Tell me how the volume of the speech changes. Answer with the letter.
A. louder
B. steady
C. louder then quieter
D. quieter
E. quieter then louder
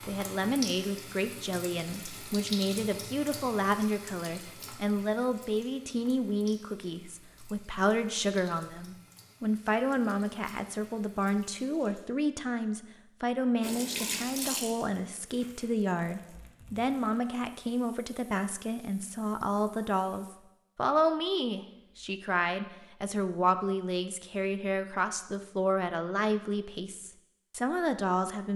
B.